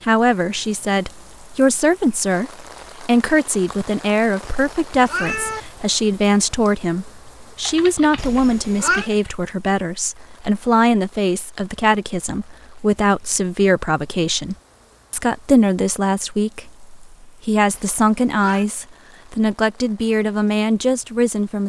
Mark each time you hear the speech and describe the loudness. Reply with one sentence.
The speech can be heard from 0.0 to 21.6 s, at a steady volume.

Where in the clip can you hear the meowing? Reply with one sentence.
You can hear the meowing from 4.4 to 5.6 s, from 8.2 to 9.1 s and from 17.7 to 18.6 s.